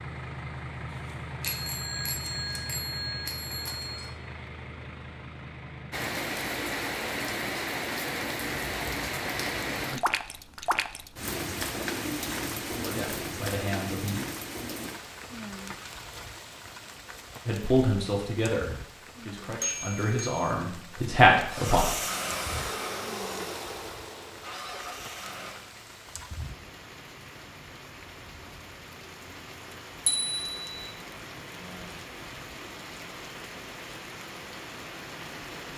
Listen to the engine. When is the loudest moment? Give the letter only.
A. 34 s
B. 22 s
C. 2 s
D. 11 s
B.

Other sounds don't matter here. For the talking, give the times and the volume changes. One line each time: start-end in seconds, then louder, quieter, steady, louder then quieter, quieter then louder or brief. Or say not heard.
12.7-14.2 brief
17.4-21.9 quieter then louder.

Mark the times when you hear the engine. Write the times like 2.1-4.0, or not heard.
0.0-6.1, 21.4-25.8.